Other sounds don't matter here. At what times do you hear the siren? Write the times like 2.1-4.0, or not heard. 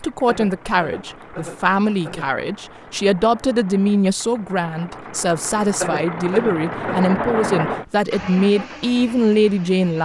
not heard.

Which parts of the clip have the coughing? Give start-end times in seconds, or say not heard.
0.2-2.2, 5.8-7.1.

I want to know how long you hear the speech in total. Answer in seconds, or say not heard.
10 s.